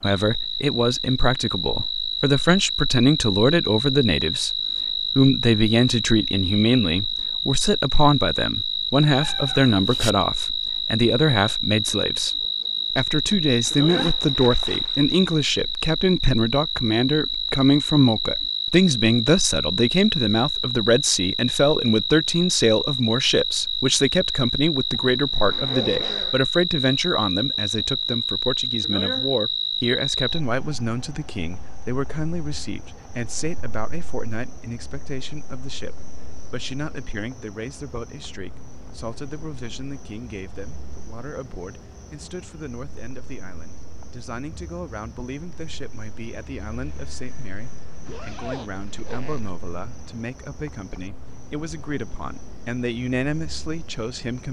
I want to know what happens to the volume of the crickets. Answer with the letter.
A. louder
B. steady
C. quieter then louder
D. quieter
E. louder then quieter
D.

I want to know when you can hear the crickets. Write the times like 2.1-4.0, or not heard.
0.0-54.4.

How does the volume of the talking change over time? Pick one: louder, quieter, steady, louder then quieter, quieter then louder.
quieter.